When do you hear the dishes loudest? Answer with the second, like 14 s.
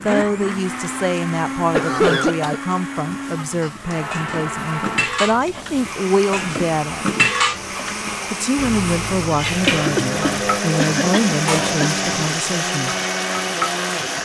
7 s.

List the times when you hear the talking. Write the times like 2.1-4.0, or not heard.
0.0-7.0, 8.3-12.9.